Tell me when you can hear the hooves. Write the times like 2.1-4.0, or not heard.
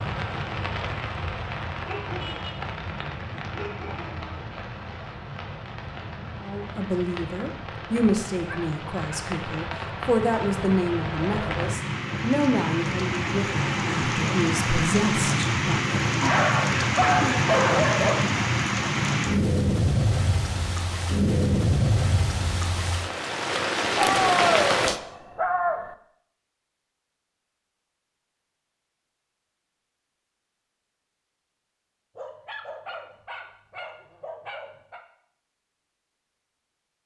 not heard.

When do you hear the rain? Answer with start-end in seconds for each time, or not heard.
0.0-25.0.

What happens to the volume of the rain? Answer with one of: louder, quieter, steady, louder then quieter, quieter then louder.
louder.